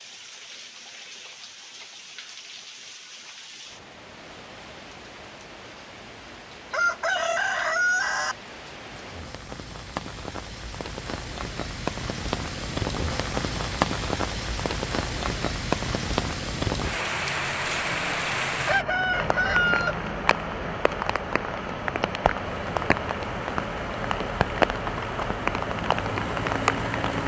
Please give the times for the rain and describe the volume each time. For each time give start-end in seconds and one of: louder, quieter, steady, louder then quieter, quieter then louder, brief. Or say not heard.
0.0-27.2 louder.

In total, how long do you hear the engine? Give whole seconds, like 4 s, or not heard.
5 s.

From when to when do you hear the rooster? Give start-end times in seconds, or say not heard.
6.7-8.3, 18.6-19.9.